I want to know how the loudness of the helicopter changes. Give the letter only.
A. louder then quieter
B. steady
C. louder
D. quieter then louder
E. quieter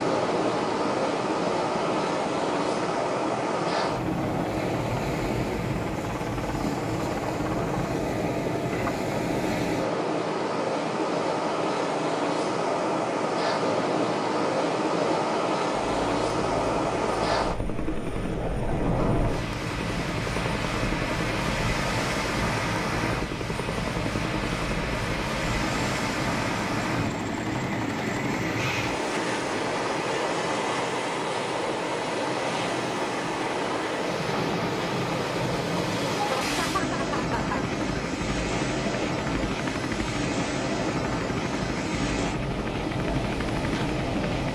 B.